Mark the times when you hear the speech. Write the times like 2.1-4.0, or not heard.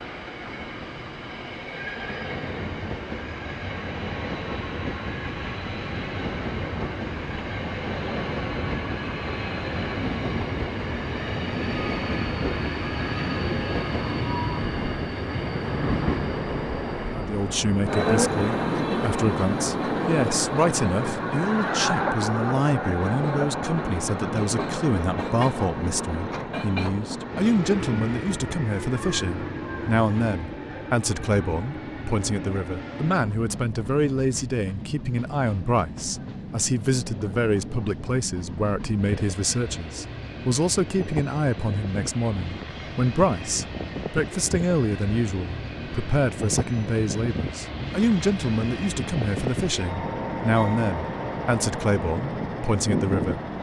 17.1-53.4.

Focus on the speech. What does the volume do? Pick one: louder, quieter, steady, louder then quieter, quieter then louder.
steady.